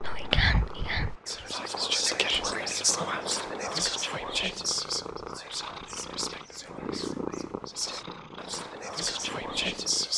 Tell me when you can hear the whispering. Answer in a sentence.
You can hear the whispering from 0.0 to 10.1 s.